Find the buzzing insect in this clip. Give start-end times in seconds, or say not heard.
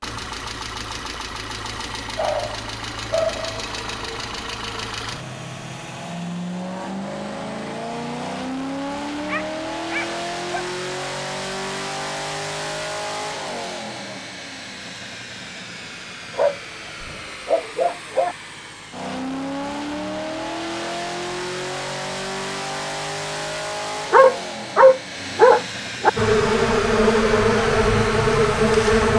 26.1-29.1.